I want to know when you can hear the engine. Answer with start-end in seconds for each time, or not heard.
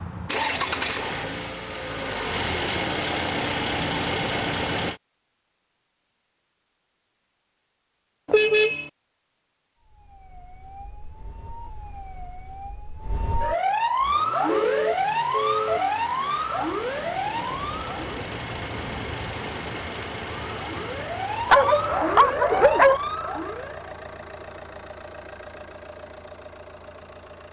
0.0-5.0, 13.9-27.4.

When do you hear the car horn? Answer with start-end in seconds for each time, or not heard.
8.2-8.9, 14.4-15.8.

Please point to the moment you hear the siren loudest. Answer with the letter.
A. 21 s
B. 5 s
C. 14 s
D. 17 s
C.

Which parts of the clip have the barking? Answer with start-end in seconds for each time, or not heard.
21.5-23.0.